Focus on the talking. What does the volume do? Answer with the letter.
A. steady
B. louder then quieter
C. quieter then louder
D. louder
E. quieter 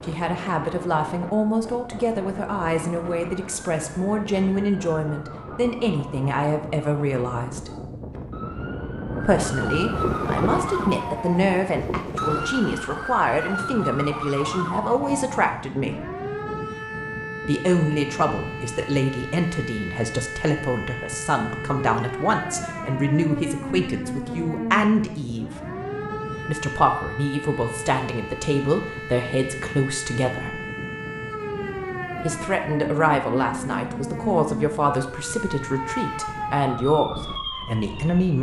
A.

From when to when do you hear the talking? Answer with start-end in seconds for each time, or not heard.
0.1-7.7, 9.2-15.9, 17.4-25.5, 26.4-30.6, 32.2-38.3.